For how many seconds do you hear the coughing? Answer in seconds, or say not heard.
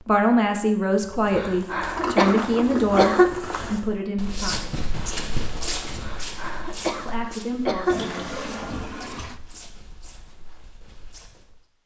4 s.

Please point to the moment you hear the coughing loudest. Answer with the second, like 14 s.
3 s.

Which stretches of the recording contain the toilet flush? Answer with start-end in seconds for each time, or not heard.
1.9-3.6, 7.8-9.4.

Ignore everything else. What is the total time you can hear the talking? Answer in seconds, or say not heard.
6 s.